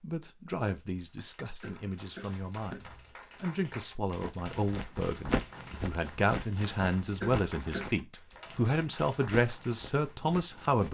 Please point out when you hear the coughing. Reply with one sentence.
You can hear the coughing from 1.6 to 2.8 s and from 7.2 to 8.0 s.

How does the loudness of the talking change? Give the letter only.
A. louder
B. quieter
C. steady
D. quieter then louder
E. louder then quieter
A.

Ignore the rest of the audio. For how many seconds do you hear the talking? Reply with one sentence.
You can hear the talking for 11 seconds altogether.